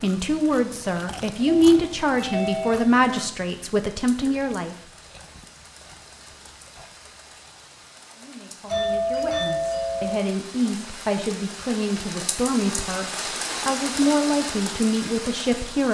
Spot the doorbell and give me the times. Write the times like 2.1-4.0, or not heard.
1.4-3.0, 8.7-10.2.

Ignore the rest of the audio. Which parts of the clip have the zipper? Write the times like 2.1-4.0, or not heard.
not heard.